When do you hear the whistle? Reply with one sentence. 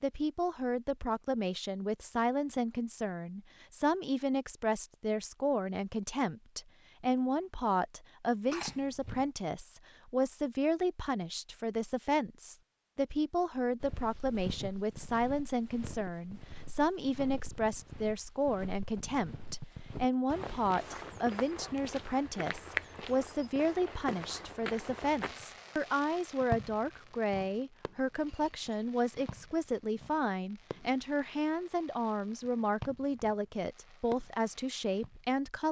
The whistle can't be heard in this clip.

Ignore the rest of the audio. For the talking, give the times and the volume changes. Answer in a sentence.
You can hear the talking from 0.0 to 35.6 s, at a steady volume.